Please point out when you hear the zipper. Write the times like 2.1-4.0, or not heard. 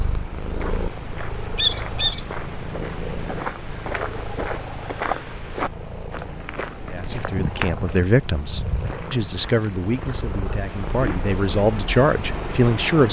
not heard.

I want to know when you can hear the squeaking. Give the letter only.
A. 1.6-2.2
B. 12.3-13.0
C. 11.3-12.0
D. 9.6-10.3
A.